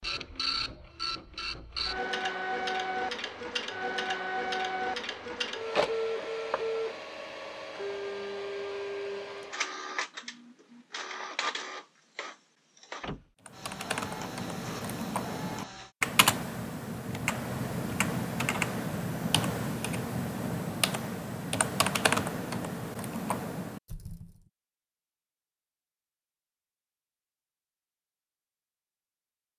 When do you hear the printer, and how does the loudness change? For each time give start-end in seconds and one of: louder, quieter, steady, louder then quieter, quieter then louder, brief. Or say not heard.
0.0-15.9 quieter.